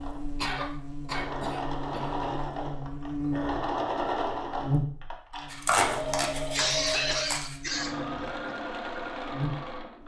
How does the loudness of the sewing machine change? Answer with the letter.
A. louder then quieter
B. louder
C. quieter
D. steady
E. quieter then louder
D.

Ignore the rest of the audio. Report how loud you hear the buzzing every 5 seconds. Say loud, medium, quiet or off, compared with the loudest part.
loud, medium.